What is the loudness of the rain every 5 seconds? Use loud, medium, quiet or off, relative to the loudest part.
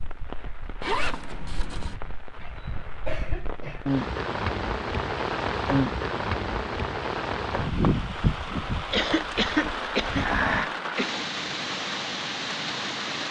medium, loud, loud.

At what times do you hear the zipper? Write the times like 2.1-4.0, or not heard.
0.8-2.0.